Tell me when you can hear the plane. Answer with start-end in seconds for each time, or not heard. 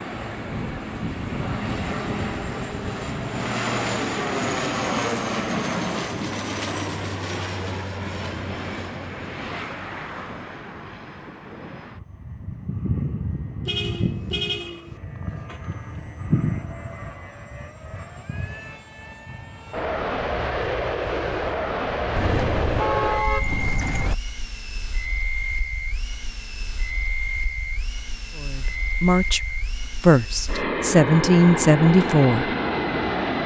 0.0-33.4.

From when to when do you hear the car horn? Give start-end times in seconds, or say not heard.
13.7-14.9, 22.1-24.1.